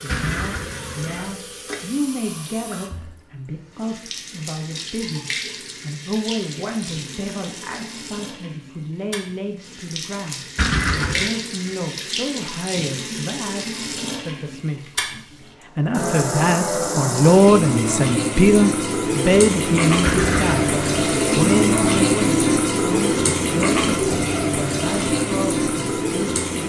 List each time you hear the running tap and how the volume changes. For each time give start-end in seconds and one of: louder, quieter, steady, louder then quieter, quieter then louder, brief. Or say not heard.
0.0-26.6 louder.